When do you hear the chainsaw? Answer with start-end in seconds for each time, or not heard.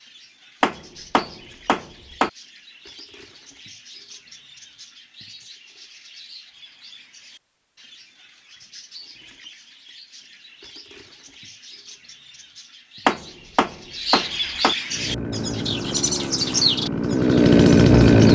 14.8-18.3.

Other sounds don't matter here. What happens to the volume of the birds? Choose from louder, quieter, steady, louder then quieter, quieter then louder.
louder.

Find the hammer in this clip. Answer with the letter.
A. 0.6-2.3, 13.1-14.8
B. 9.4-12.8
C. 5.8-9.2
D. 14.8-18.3
A.